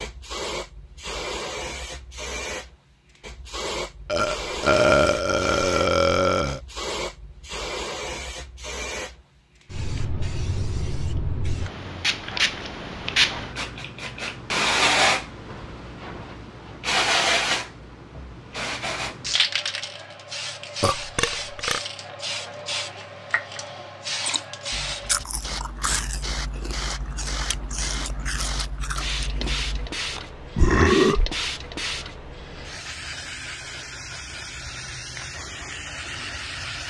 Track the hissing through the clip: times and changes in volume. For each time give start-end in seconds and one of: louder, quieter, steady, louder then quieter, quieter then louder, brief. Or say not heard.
0.0-36.8 louder then quieter.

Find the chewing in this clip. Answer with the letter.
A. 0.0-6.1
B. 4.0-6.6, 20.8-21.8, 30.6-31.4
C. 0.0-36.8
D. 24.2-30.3
D.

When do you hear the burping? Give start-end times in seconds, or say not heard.
4.0-6.6, 20.8-21.8, 30.6-31.4.